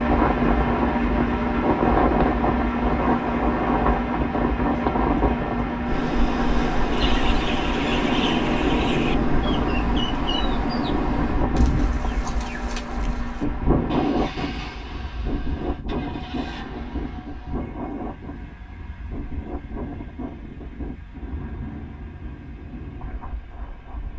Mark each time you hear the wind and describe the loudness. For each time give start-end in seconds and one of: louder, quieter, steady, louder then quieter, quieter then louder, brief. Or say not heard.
0.0-24.1 quieter.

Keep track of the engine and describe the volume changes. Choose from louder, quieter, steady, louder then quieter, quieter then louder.
quieter.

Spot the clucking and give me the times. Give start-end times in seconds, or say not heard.
6.9-13.4.